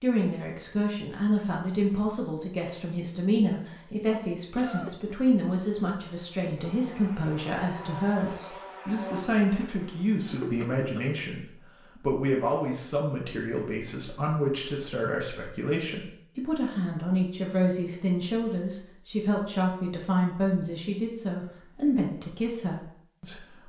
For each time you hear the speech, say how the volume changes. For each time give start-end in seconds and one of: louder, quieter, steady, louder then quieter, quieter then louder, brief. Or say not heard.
0.0-23.6 steady.